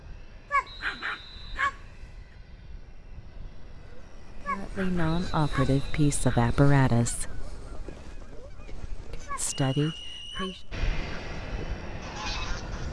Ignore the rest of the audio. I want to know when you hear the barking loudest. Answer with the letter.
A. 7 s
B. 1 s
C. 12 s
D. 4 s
B.